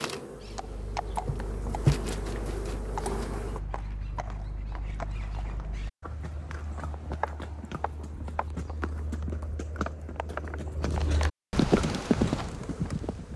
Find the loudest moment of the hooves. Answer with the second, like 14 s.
12 s.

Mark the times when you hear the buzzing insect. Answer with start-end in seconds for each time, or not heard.
0.0-3.6, 11.8-13.3.